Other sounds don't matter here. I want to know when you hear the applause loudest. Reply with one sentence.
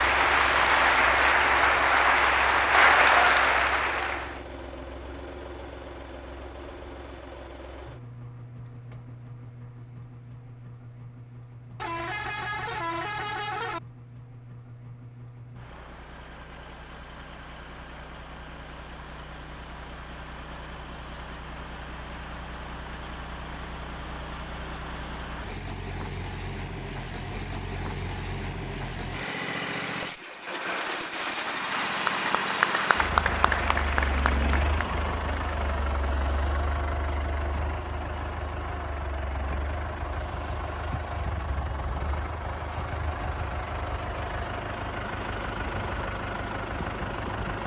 The volume of the applause peaks at 3 seconds.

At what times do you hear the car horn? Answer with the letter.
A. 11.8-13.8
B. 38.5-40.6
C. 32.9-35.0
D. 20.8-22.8
A.